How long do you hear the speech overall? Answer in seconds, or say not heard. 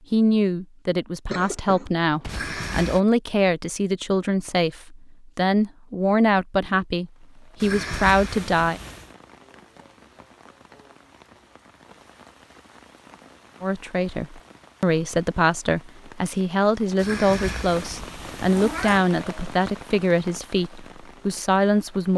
17 s.